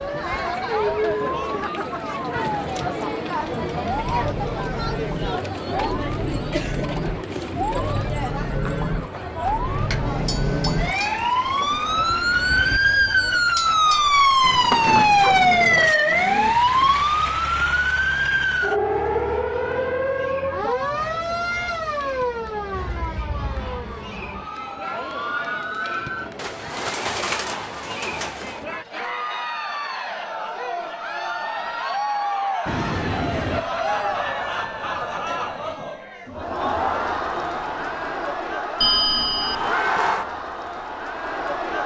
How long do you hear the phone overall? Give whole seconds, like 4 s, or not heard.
4 s.